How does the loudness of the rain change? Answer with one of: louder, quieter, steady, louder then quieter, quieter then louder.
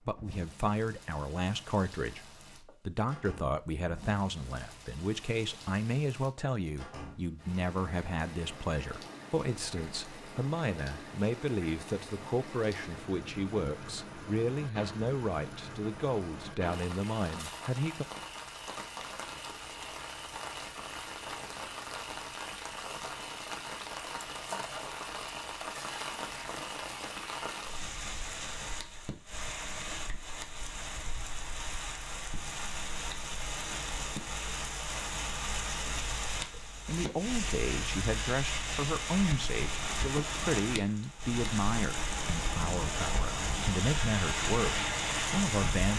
louder.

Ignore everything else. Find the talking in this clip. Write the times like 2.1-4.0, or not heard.
0.1-18.1, 36.5-45.9.